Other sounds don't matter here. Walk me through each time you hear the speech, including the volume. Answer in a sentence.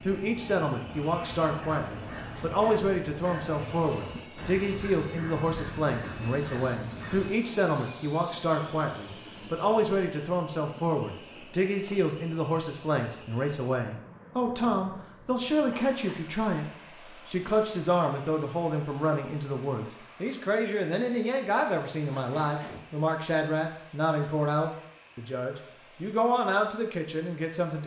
You can hear the speech from 0.0 to 27.8 s, at a steady volume.